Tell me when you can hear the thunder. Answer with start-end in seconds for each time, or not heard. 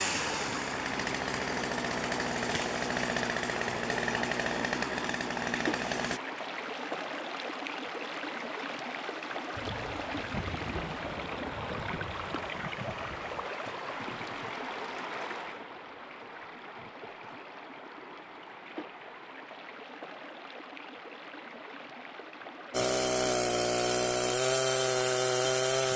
9.5-13.5.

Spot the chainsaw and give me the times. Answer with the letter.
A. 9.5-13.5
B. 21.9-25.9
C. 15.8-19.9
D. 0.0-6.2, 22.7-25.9
D.